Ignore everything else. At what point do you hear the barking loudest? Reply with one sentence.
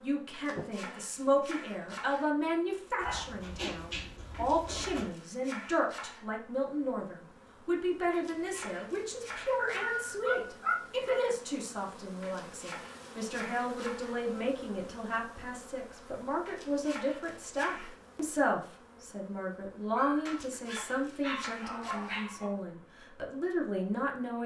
The volume of the barking peaks at 11 seconds.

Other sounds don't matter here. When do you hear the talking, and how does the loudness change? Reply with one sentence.
You can hear the talking from 0.0 to 24.4 s, at a steady volume.